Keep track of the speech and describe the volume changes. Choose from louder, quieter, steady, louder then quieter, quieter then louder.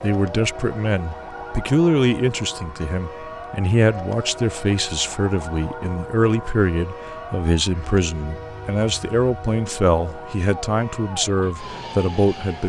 steady.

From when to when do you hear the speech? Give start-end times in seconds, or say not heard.
0.0-12.6.